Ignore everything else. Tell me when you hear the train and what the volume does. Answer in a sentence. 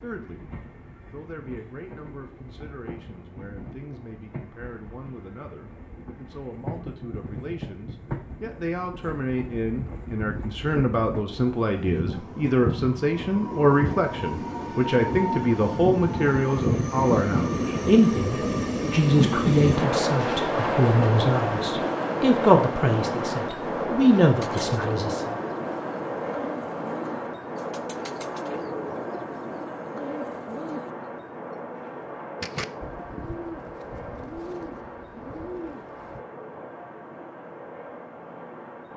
You can hear the train from 0.0 to 38.9 s, getting louder then quieter.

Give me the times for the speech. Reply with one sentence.
You can hear the speech from 0.0 to 0.5 s and from 1.1 to 25.3 s.